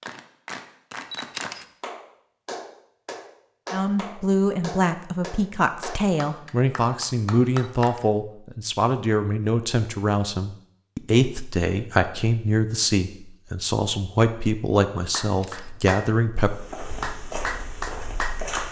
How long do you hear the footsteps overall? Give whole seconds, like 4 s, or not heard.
2 s.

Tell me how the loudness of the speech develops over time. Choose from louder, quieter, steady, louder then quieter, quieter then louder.
steady.